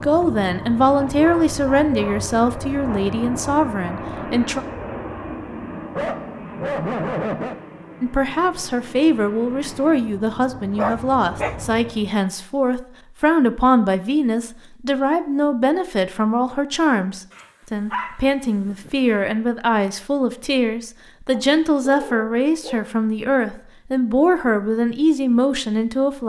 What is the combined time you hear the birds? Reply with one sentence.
You can't hear the birds here.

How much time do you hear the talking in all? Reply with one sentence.
You can hear the talking for 23 seconds altogether.